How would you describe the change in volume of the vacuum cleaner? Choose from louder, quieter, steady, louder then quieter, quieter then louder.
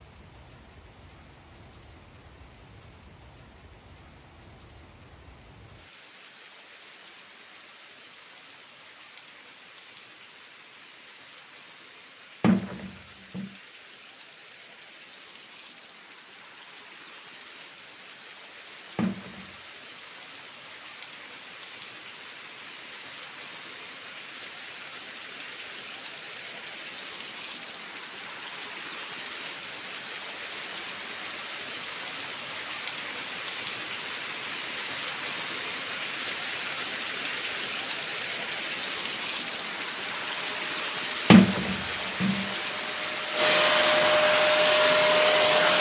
louder.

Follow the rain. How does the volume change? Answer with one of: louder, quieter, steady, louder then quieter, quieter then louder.
louder.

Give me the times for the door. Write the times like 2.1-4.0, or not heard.
12.4-13.5, 18.9-19.4, 41.3-42.5.